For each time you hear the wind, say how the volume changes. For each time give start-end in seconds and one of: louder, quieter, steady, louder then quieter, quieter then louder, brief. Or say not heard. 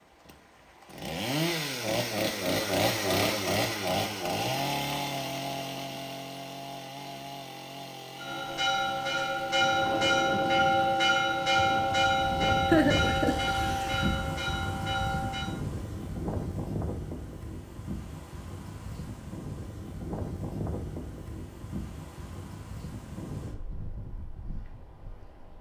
9.6-25.5 quieter.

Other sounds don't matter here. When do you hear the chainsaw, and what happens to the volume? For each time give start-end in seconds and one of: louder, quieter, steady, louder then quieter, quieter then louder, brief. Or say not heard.
0.0-14.1 quieter.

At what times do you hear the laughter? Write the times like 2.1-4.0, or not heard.
12.7-13.3.